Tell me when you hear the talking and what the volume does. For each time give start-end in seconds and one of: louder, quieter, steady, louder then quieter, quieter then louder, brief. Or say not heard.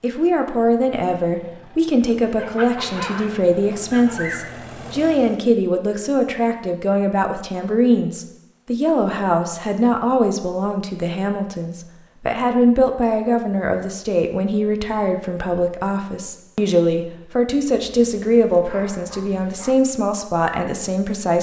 0.0-21.3 steady.